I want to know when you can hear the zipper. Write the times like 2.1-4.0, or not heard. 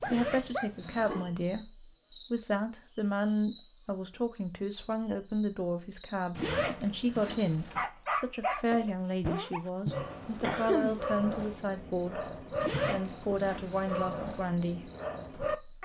0.0-1.2, 6.3-7.9, 12.6-14.1.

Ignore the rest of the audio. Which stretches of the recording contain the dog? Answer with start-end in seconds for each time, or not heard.
0.0-1.6, 7.8-15.7.